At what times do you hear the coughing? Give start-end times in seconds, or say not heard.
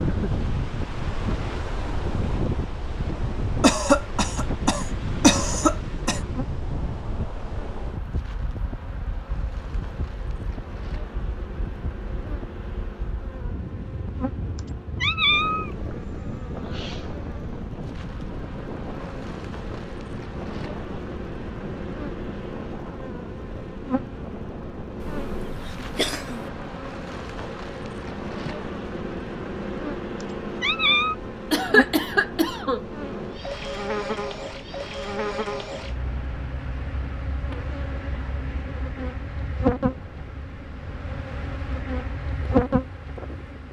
3.6-6.2, 25.0-26.5, 31.5-32.9.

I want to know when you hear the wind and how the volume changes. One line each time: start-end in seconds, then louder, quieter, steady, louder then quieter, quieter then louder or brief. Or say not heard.
0.0-43.6 quieter.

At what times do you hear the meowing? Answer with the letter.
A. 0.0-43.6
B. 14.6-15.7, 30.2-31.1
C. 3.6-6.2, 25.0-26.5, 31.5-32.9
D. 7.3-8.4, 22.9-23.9
B.